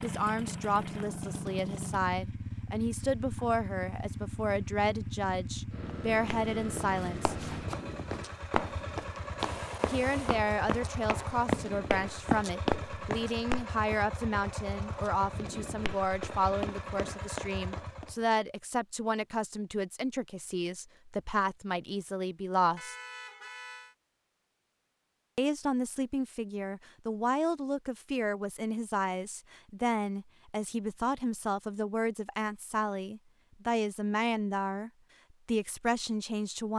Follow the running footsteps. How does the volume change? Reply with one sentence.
The volume of the running footsteps goes up, then down.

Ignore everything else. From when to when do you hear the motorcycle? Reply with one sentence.
You can hear the motorcycle from 0.0 to 18.2 s.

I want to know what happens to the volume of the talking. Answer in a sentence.
The loudness of the talking stays about the same.